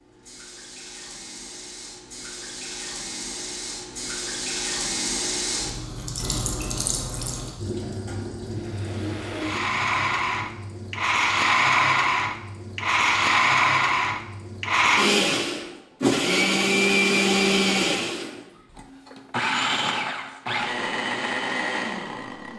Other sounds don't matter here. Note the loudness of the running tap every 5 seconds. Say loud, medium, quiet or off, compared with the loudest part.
loud, loud, medium, off, off.